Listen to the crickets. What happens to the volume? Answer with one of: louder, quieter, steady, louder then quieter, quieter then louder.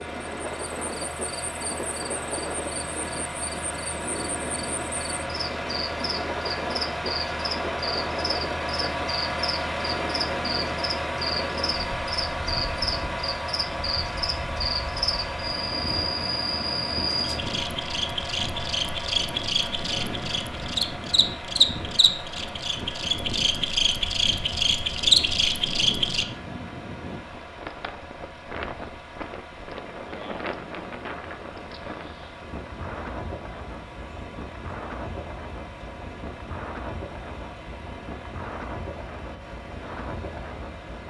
louder.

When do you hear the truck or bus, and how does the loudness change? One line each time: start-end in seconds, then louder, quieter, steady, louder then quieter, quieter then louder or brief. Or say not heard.
0.0-41.0 quieter.